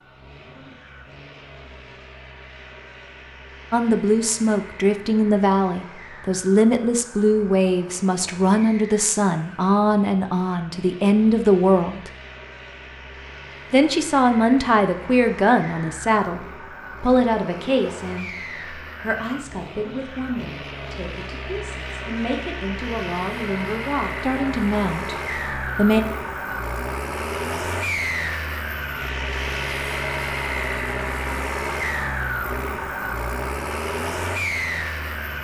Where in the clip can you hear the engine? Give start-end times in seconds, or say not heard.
0.0-35.3.